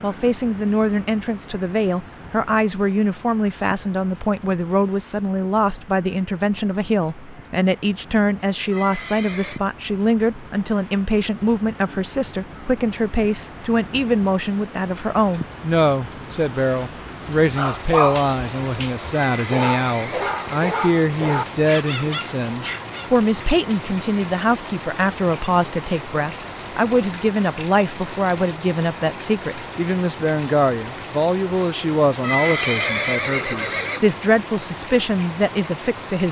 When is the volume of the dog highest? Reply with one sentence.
The volume of the dog peaks at 18 seconds.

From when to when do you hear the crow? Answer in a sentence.
You can't hear the crow here.